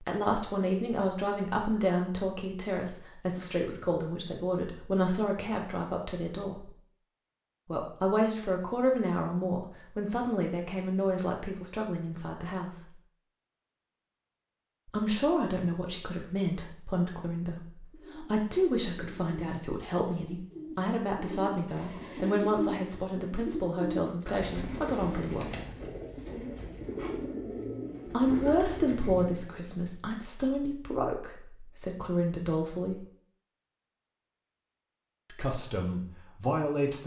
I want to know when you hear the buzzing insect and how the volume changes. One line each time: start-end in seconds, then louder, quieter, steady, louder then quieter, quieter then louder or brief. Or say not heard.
not heard.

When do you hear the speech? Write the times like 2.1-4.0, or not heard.
0.0-6.7, 7.7-12.8, 14.8-25.6, 28.1-33.0, 35.3-37.0.